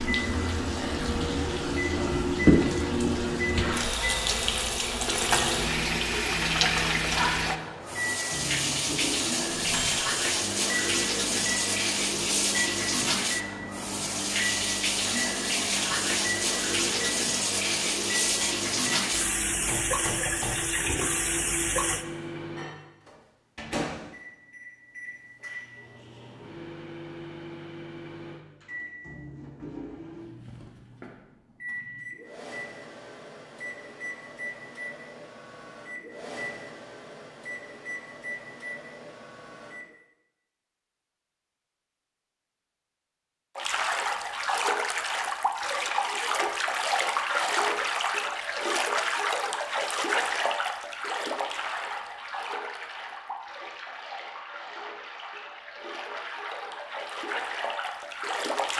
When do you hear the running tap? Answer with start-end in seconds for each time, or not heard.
0.0-22.1, 43.5-58.7.